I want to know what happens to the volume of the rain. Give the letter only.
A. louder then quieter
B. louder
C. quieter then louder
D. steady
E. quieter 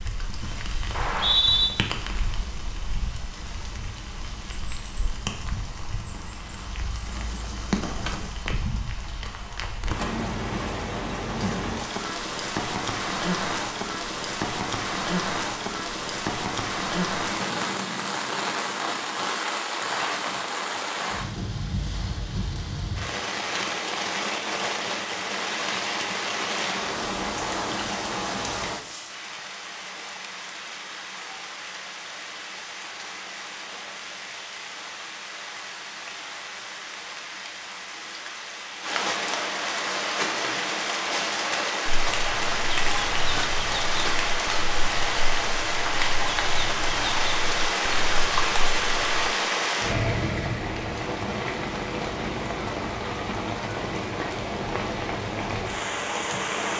B.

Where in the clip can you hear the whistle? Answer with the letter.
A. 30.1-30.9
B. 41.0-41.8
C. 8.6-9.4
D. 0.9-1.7
D.